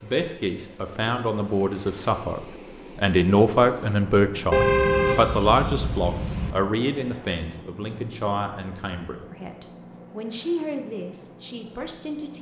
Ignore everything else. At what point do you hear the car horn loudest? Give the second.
5 s.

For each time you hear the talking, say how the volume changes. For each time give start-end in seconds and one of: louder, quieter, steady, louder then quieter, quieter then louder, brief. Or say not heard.
0.0-12.3 louder then quieter.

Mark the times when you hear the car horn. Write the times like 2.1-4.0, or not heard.
4.5-6.5.